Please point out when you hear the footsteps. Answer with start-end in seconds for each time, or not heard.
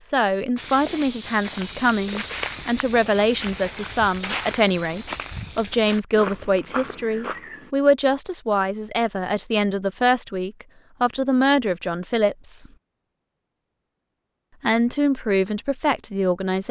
0.6-7.7.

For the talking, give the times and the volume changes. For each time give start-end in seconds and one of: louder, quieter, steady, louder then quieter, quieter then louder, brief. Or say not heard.
0.0-12.7 steady
14.6-16.6 brief.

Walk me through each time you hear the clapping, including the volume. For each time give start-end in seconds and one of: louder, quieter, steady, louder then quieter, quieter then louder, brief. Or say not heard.
not heard.